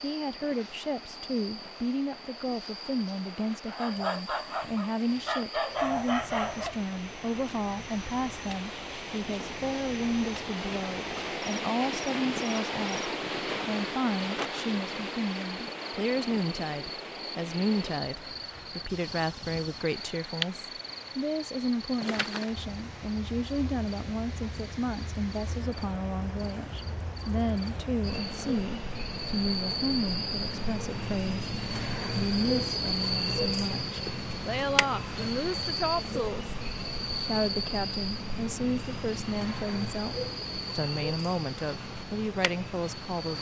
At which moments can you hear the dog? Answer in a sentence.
The dog can be heard from 3.6 to 6.8 s.